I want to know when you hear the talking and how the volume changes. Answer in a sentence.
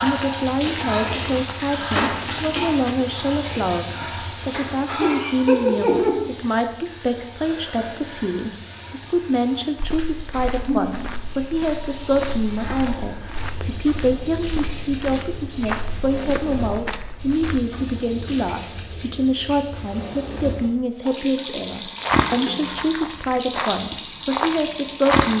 You can hear the talking from 0.0 to 25.3 s, at a steady volume.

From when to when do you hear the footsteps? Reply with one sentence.
The footsteps can be heard from 0.0 to 2.7 s, from 9.8 to 17.6 s and from 22.0 to 25.3 s.